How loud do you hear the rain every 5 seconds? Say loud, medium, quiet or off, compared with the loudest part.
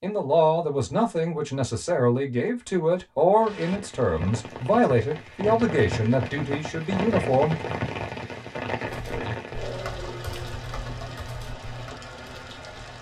medium, loud, medium.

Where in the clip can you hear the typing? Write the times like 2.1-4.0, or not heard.
8.8-12.8.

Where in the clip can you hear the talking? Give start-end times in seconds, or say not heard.
0.0-7.5.